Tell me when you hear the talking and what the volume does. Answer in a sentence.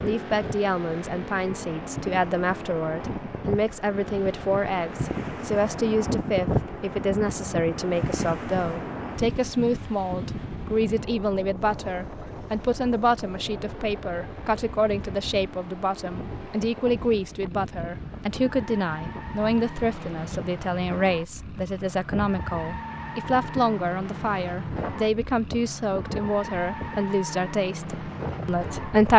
The talking can be heard from 0.0 to 29.1 s, at a steady volume.